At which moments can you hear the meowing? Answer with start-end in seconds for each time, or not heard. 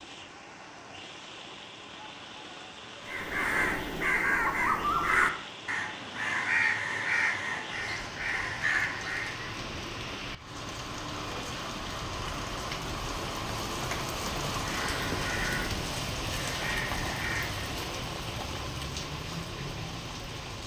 not heard.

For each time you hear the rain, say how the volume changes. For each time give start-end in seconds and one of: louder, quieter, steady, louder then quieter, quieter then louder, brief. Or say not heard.
0.0-20.6 louder.